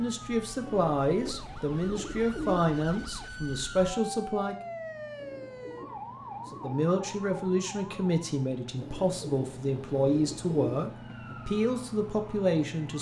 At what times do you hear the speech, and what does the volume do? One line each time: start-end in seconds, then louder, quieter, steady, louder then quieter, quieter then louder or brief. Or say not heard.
0.0-4.5 steady
6.5-12.9 steady.